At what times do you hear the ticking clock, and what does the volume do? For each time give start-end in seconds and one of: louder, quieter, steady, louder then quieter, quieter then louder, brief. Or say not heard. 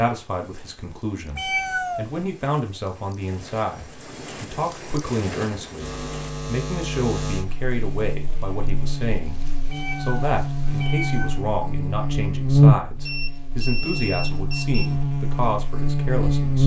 not heard.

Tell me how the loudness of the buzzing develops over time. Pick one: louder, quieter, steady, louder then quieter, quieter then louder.
louder then quieter.